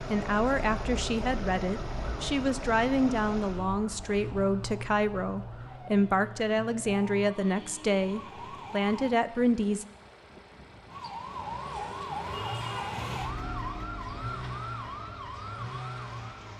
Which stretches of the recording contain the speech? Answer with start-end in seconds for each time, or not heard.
0.1-9.8.